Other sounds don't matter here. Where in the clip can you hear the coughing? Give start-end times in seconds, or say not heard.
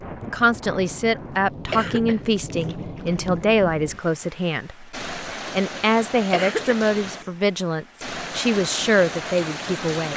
1.1-2.7, 5.8-7.3.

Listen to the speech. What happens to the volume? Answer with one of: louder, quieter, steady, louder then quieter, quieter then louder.
steady.